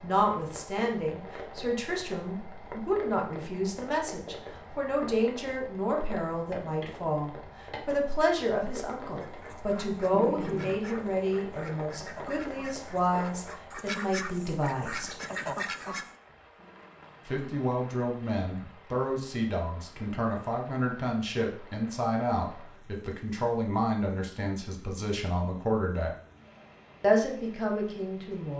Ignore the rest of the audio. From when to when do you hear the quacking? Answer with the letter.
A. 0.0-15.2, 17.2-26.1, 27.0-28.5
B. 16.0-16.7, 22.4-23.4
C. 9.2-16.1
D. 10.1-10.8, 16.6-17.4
C.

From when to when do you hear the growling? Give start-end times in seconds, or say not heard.
10.1-10.8, 16.6-17.4.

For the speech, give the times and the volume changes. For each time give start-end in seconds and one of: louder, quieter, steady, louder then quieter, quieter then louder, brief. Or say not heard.
0.0-15.2 steady
17.2-26.1 steady
27.0-28.5 brief.